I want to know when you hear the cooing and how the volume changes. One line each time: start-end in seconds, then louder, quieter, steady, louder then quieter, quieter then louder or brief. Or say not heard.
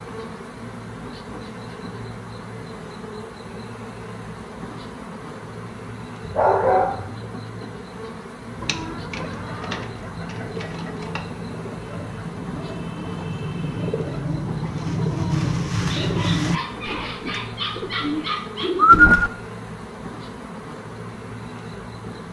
8.6-19.3 louder.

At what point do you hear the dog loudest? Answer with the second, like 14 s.
7 s.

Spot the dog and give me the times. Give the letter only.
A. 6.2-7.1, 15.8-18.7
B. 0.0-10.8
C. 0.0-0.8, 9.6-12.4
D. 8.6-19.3
A.